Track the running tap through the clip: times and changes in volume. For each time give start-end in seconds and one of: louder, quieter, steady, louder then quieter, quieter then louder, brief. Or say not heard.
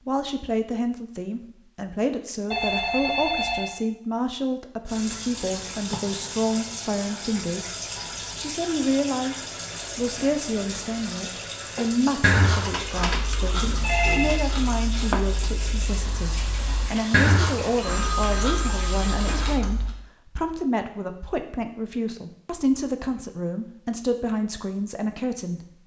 4.8-19.6 steady.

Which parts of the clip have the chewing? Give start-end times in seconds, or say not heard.
12.2-19.9.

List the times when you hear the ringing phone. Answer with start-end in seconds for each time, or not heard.
2.5-3.8, 13.6-14.3, 17.8-19.3.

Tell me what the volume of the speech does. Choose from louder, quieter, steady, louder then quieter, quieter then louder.
steady.